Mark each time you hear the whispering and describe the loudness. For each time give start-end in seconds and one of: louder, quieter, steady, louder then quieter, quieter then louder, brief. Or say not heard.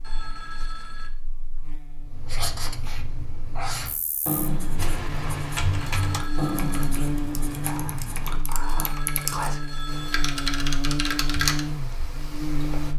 not heard.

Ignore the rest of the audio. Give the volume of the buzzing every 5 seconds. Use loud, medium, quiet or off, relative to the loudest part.
quiet, loud, loud.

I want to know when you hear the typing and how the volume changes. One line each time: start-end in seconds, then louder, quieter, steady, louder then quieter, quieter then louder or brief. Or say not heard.
4.8-12.9 quieter then louder.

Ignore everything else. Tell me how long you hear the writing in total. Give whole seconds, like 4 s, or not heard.
7 s.